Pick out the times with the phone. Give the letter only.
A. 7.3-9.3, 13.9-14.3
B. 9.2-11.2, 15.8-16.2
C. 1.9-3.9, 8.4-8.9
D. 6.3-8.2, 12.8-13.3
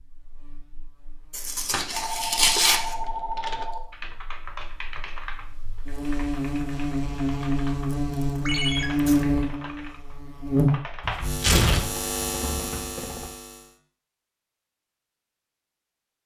C.